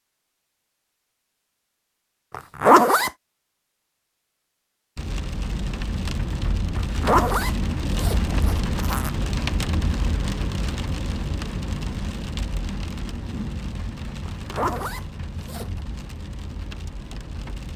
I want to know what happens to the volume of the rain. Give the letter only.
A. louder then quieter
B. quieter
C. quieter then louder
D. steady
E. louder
B.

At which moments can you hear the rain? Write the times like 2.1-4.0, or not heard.
5.0-17.7.